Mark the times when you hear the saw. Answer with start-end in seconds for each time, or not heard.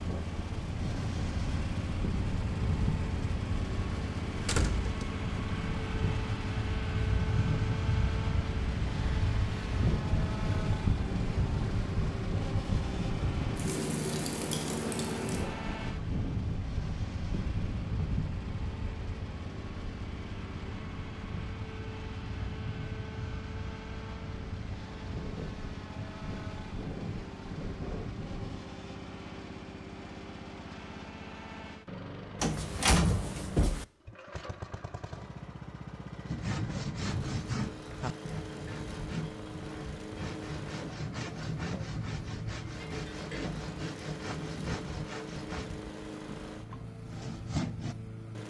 36.2-48.0.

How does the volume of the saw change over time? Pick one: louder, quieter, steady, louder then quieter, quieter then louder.
quieter.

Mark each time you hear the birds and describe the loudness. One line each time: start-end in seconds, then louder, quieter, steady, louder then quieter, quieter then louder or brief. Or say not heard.
not heard.